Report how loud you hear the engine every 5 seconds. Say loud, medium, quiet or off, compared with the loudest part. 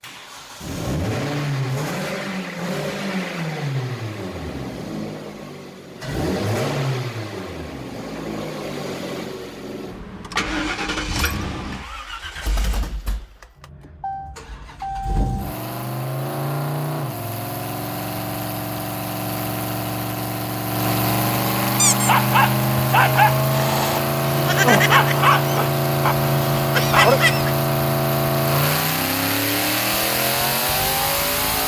medium, medium, medium, medium, loud, loud, loud.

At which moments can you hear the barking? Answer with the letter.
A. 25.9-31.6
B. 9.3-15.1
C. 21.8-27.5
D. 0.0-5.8
C.